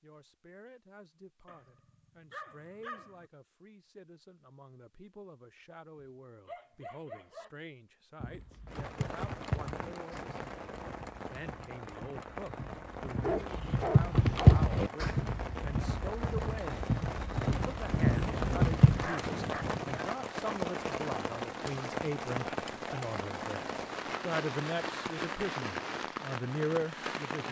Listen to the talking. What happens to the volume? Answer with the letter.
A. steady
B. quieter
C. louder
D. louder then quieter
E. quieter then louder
C.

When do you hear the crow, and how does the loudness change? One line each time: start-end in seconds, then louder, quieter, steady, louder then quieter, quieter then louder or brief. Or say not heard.
not heard.